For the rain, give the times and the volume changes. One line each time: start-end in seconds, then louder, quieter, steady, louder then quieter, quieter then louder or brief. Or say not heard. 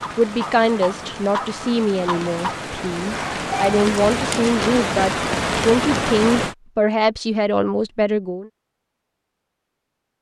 0.0-6.5 louder.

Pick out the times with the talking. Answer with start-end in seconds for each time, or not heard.
0.1-8.5.